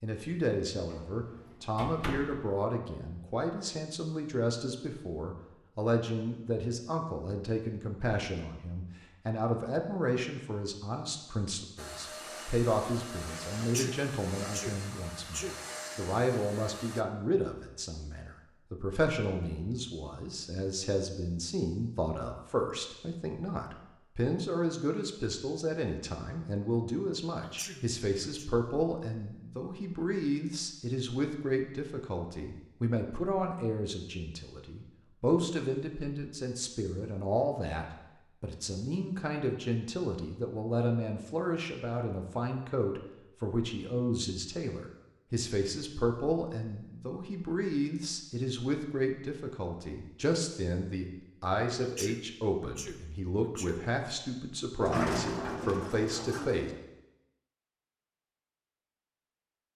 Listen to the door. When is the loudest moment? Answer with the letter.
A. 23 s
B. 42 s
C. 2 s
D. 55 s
D.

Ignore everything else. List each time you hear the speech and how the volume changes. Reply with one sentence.
The speech can be heard from 0.0 to 56.7 s, at a steady volume.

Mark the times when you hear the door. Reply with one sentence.
You can hear the door from 0.9 to 2.5 s and from 54.8 to 56.8 s.